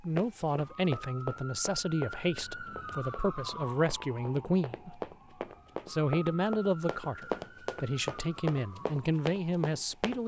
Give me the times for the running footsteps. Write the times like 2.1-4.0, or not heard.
0.1-10.2.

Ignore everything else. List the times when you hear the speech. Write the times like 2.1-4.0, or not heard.
0.0-5.0, 5.8-10.2.